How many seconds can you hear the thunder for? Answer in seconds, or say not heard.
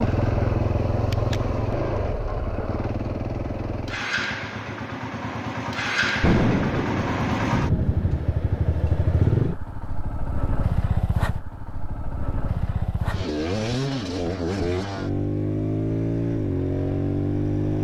2 s.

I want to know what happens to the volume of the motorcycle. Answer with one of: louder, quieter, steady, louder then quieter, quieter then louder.
steady.